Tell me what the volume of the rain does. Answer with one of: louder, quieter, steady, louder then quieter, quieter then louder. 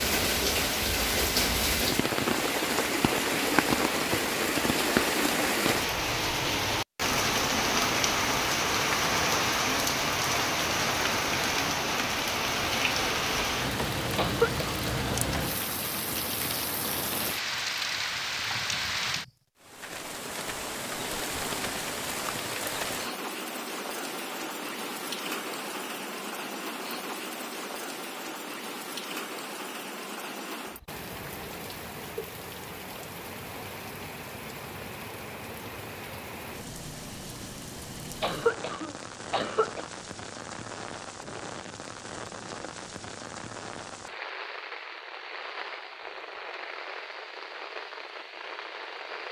quieter.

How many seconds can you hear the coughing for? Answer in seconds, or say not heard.
2 s.